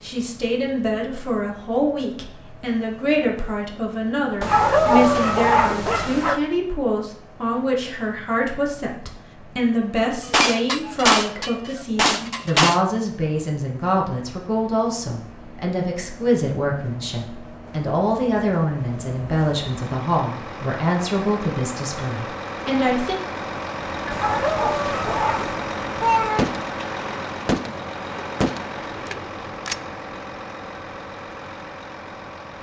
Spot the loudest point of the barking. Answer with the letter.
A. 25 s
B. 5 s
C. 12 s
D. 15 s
B.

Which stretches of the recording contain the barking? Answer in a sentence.
You can hear the barking from 4.4 to 6.4 s and from 24.1 to 25.6 s.